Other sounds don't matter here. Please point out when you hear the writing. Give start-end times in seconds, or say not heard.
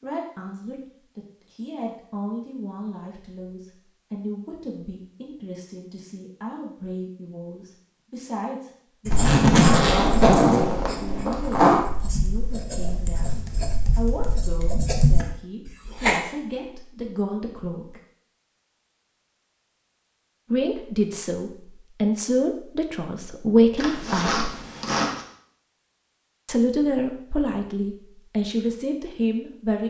9.1-16.2.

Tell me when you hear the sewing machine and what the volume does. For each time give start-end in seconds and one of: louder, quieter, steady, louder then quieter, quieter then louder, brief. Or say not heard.
not heard.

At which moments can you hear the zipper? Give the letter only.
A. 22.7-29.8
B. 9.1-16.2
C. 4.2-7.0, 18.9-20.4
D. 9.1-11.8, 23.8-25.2
D.